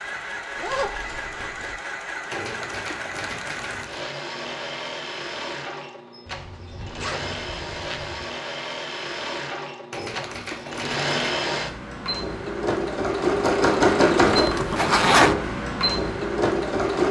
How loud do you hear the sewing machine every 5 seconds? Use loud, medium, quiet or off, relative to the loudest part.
medium, medium, loud, loud.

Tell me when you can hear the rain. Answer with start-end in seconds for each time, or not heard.
not heard.